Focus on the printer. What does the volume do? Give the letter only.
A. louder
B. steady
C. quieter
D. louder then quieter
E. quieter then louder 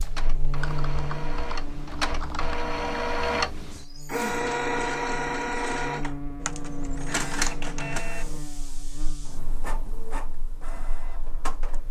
D.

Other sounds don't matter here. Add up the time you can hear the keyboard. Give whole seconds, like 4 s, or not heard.
4 s.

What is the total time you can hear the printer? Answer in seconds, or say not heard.
12 s.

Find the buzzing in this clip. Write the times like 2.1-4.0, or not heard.
0.0-11.8.